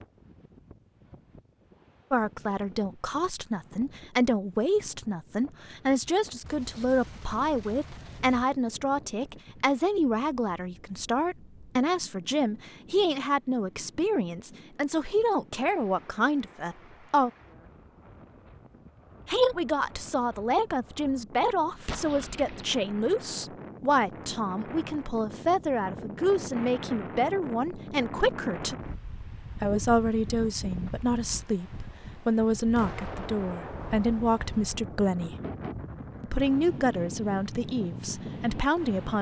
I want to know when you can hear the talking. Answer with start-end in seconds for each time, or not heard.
2.1-17.3, 19.2-28.8, 29.6-35.4, 36.2-39.1.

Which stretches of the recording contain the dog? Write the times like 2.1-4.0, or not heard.
not heard.